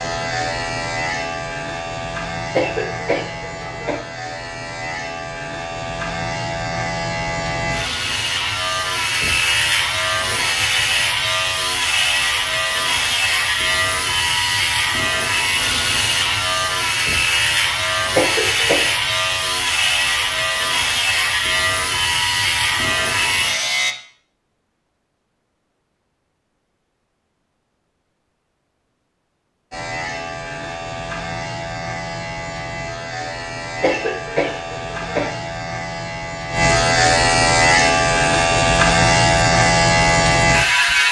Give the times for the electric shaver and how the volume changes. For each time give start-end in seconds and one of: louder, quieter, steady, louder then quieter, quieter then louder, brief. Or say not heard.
0.0-23.9 louder
29.7-41.0 louder.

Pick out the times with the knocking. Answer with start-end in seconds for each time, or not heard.
not heard.